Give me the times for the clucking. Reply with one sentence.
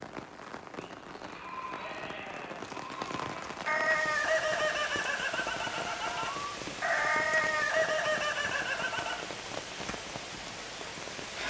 You can hear the clucking from 3.6 to 9.2 s.